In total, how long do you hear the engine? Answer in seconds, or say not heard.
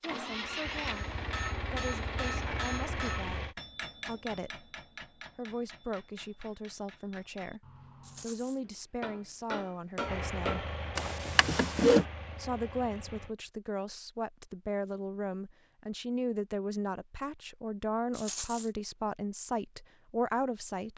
7 s.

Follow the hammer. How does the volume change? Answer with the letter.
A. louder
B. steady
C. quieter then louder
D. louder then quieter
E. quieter
C.